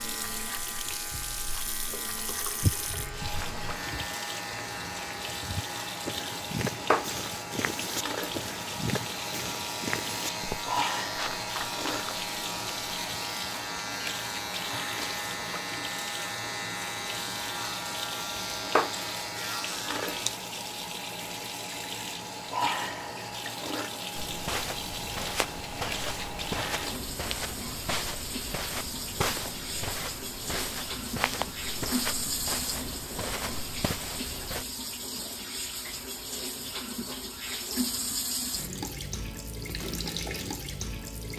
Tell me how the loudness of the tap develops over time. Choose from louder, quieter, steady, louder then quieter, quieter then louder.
steady.